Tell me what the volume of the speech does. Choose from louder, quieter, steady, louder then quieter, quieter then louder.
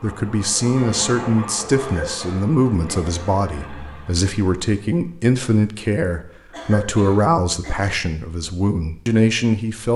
steady.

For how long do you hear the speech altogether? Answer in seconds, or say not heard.
10 s.